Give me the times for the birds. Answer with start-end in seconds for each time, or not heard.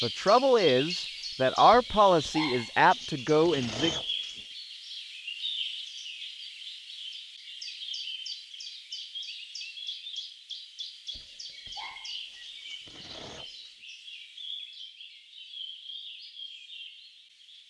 0.0-17.6.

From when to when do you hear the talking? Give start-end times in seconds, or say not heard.
0.0-3.9.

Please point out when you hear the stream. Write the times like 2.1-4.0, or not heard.
not heard.